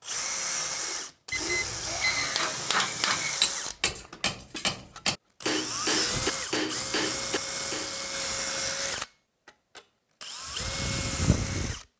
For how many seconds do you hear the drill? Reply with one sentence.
The drill can be heard for 12 seconds in total.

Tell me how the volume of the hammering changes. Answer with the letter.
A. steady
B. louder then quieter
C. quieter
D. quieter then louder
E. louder
A.